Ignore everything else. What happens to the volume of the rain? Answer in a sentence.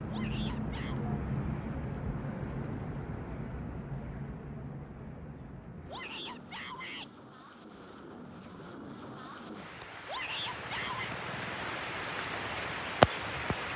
The volume of the rain goes down, then up.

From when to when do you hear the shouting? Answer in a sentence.
The shouting can be heard from 0.1 to 1.1 s, from 5.8 to 7.1 s and from 10.1 to 11.1 s.